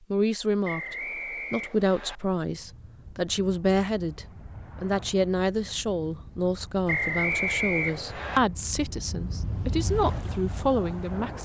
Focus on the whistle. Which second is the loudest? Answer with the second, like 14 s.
7 s.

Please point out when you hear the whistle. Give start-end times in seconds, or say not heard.
0.6-2.2, 6.8-8.4.